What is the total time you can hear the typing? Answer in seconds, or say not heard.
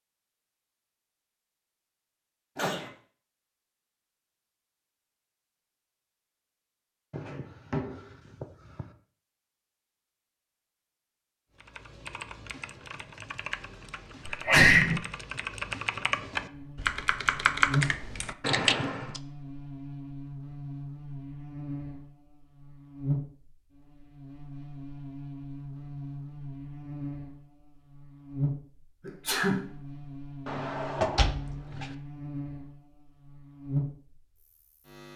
8 s.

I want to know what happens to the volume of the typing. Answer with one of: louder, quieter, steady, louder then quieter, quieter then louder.
louder.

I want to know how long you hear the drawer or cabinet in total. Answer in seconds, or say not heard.
4 s.